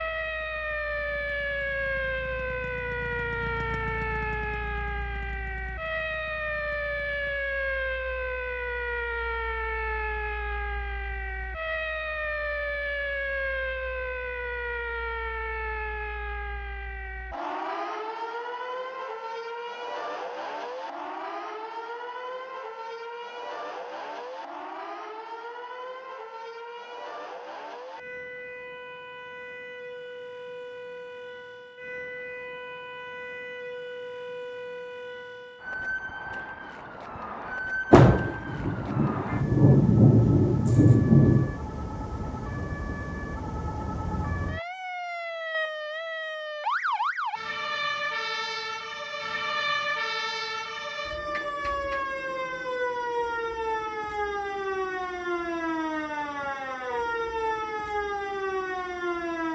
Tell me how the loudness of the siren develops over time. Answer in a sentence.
The volume of the siren goes down, then up.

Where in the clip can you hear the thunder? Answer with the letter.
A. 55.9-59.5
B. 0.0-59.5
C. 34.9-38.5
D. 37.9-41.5
D.